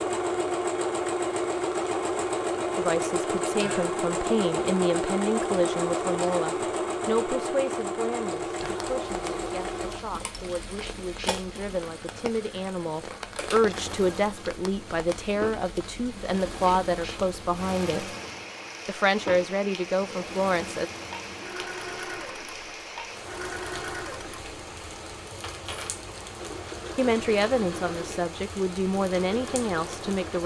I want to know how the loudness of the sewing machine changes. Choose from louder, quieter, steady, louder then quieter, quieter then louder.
quieter.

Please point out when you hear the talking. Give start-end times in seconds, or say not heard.
2.8-18.1, 18.9-20.9, 26.9-30.4.